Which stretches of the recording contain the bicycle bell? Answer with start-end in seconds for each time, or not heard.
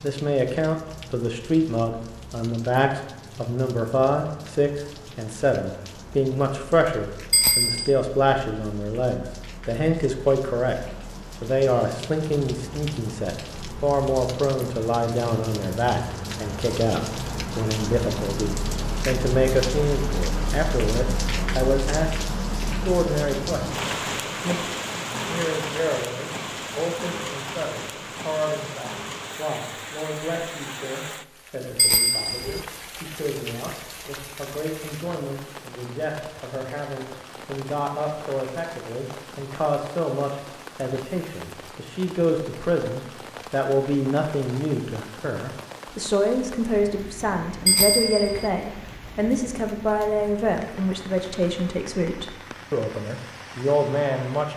7.3-7.9, 31.8-32.6, 47.6-48.5.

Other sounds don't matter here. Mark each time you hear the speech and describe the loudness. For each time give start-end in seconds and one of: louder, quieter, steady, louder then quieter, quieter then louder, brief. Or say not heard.
0.0-10.8 steady
11.4-54.5 quieter then louder.